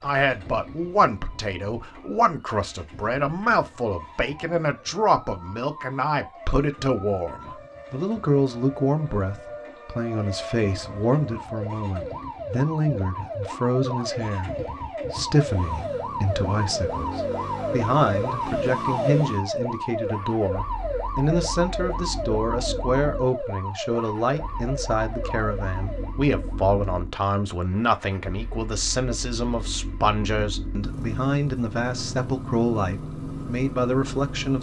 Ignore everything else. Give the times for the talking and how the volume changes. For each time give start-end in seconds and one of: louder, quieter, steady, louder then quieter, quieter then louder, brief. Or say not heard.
0.0-34.5 steady.